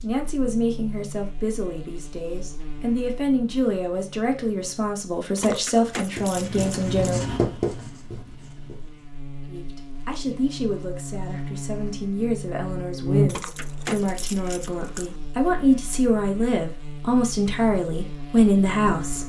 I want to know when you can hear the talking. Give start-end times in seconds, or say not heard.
0.0-7.2, 9.4-19.2.